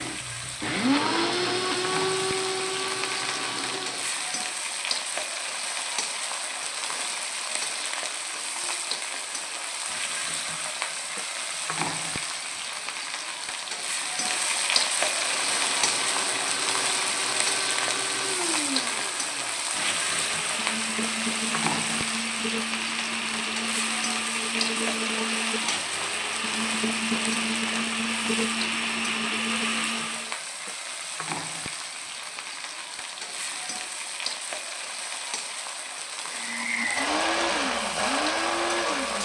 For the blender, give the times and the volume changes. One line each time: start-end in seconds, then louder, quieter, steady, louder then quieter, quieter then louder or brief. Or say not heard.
0.0-4.2 quieter
15.0-30.4 louder
36.3-39.2 brief.